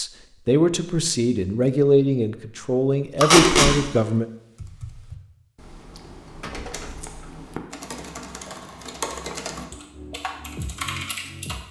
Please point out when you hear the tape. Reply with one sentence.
You can hear the tape from 3.2 to 3.7 s and from 6.5 to 7.0 s.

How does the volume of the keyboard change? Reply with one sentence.
The volume of the keyboard goes up.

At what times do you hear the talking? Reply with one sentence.
You can hear the talking from 0.0 to 4.2 s.